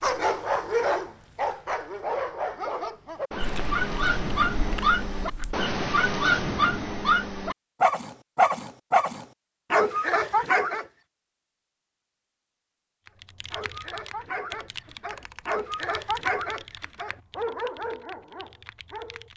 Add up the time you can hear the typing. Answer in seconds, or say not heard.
6 s.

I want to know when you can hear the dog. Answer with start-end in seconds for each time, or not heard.
0.0-10.8, 13.5-19.3.